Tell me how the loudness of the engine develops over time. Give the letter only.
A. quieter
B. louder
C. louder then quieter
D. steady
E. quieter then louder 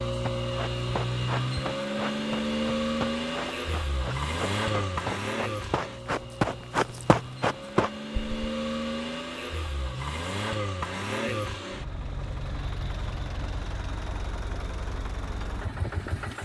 A.